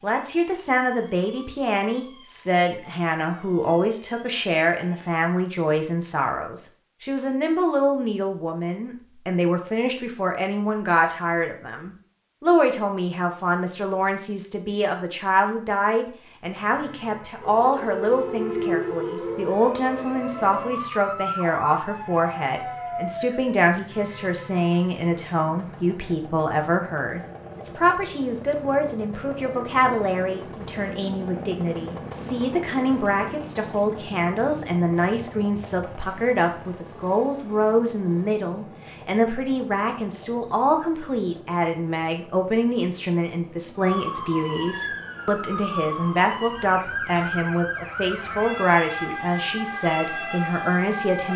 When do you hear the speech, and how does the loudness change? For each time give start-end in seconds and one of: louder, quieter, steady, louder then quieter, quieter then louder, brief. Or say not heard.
0.0-51.3 steady.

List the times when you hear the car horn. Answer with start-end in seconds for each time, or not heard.
not heard.